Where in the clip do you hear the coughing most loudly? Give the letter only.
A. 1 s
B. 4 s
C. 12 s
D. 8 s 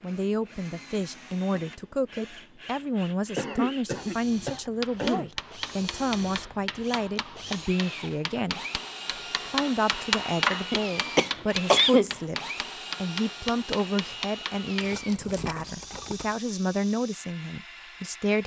C.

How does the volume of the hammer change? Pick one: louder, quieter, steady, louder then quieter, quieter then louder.
louder then quieter.